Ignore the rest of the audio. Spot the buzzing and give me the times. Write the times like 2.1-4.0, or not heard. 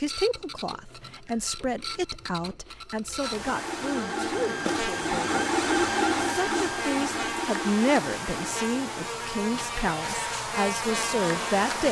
3.2-11.8.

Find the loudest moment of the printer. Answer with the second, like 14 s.
6 s.